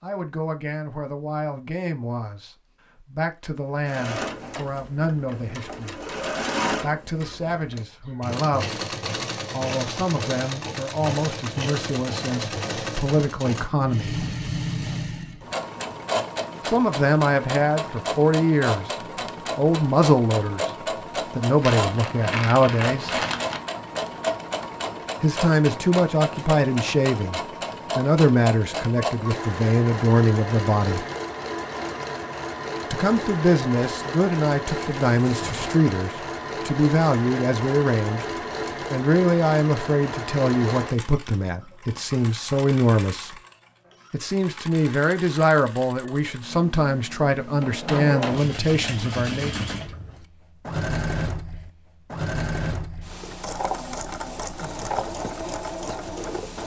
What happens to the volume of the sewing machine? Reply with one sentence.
The loudness of the sewing machine stays about the same.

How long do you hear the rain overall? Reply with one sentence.
The rain can't be heard in this clip.